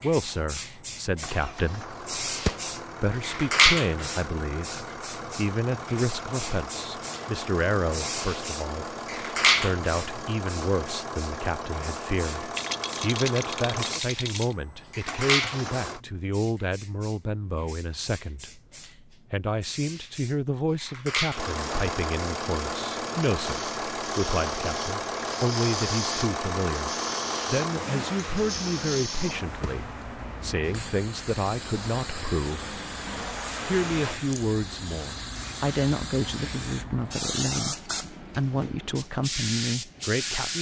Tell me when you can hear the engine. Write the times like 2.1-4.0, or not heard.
0.0-16.0, 21.3-34.2.